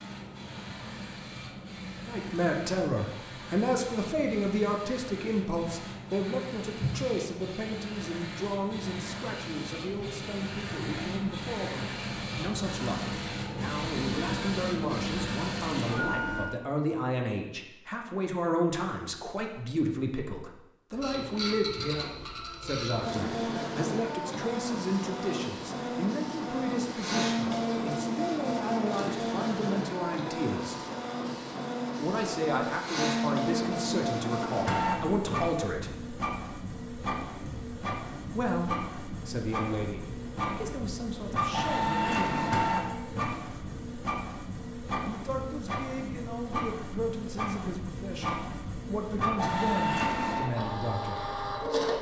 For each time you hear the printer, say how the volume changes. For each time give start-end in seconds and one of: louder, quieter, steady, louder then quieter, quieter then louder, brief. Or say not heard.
0.0-16.5 louder
20.9-51.9 steady.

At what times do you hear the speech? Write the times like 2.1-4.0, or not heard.
2.0-30.8, 31.9-36.0, 38.3-42.6, 45.0-51.2.